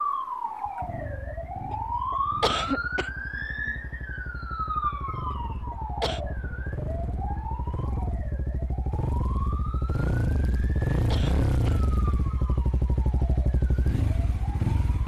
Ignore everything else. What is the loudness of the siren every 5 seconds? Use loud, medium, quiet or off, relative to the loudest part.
loud, medium, quiet.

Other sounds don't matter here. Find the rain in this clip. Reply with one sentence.
The rain can't be heard in this clip.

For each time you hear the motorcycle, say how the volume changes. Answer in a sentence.
The motorcycle can be heard from 0.1 to 15.0 s, getting louder.